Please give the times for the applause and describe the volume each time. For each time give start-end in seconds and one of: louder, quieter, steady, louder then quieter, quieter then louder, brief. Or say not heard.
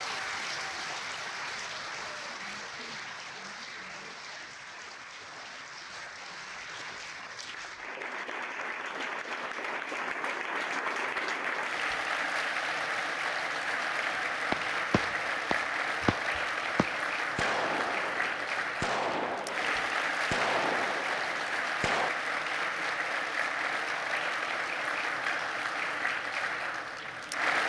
0.0-27.6 louder.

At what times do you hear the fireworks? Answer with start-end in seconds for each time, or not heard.
14.2-22.1.